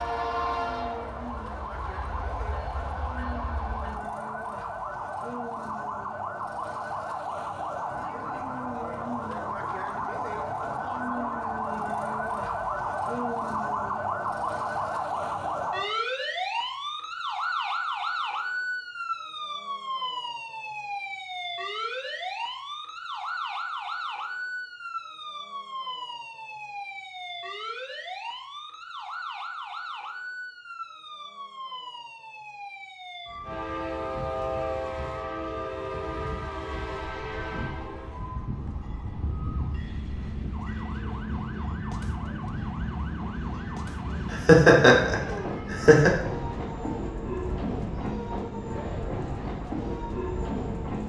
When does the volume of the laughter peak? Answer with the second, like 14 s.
45 s.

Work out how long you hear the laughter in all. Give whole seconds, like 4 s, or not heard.
2 s.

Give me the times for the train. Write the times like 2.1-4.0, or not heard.
0.0-4.0, 33.5-51.0.